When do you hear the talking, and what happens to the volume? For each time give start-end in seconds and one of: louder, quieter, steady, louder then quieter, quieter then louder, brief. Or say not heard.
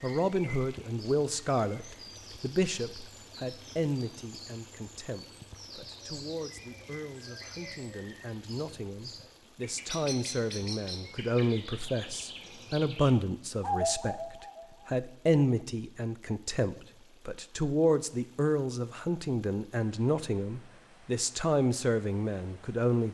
0.0-23.0 quieter then louder.